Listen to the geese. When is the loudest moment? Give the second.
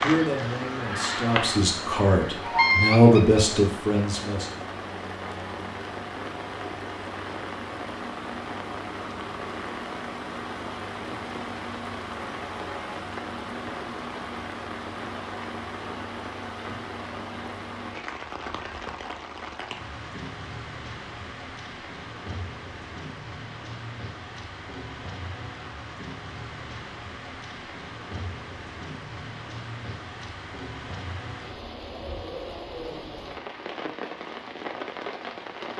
3 s.